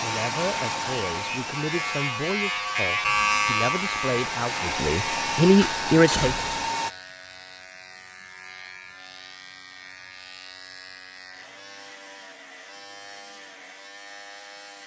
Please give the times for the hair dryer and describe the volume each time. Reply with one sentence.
The hair dryer can be heard from 0.0 to 6.9 s, getting quieter then louder.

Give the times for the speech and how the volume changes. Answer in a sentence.
You can hear the speech from 0.0 to 6.4 s, getting louder.